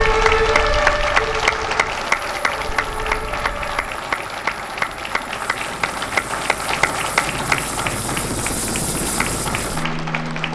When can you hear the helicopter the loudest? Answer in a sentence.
The volume of the helicopter peaks at 9 seconds.